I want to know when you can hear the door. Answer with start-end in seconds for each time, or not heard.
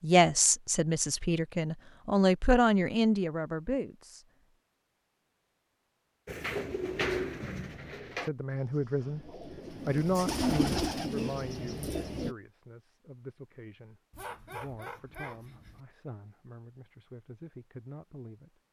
not heard.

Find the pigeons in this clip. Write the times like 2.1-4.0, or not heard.
6.2-12.3.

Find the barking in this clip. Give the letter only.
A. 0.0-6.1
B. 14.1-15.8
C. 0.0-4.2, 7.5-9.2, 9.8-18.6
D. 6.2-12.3
B.